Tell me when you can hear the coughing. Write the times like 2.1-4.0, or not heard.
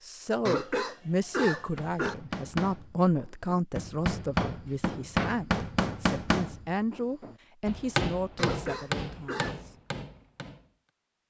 0.5-2.1, 8.3-9.6.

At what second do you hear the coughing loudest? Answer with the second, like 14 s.
1 s.